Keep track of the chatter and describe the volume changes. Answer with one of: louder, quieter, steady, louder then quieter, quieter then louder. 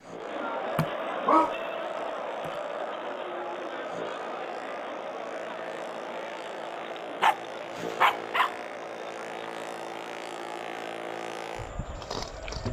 quieter.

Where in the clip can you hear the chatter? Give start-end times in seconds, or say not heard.
0.0-12.6.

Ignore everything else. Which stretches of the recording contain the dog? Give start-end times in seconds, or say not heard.
0.8-2.5, 7.2-8.6.